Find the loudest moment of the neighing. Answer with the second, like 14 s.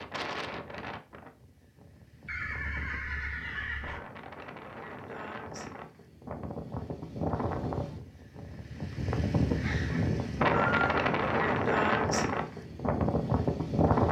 11 s.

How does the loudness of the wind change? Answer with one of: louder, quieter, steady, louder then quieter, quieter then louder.
louder.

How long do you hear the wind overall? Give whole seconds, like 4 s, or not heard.
14 s.